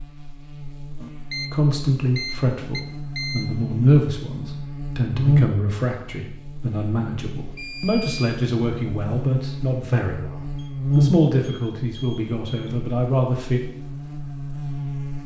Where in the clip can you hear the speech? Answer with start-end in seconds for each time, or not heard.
1.5-13.6.